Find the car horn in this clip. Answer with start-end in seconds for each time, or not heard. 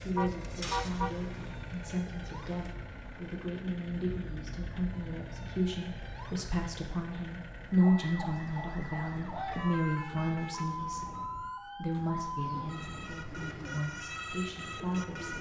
0.1-1.2, 9.4-10.7.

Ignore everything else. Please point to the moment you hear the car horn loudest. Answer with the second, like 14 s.
1 s.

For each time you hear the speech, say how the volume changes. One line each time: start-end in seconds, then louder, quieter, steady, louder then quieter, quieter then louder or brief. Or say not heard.
0.0-15.3 louder then quieter.